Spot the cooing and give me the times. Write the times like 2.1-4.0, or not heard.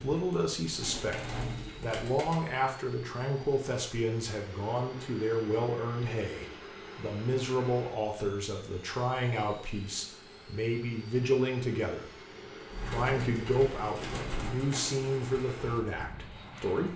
0.0-2.6, 12.7-16.8.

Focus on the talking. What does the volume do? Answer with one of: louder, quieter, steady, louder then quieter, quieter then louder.
steady.